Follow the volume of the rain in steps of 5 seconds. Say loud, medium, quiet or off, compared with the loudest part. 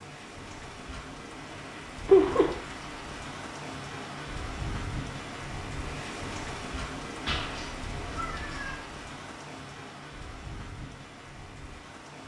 loud, loud, medium.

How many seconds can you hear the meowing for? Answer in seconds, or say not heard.
2 s.